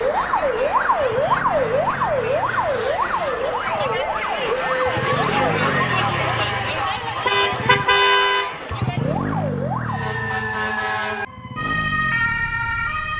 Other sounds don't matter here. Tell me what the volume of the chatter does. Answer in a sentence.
The volume of the chatter goes up, then down.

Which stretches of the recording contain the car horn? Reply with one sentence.
The car horn can be heard from 7.2 to 8.6 s.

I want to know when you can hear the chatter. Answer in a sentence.
The chatter can be heard from 0.0 to 9.2 s.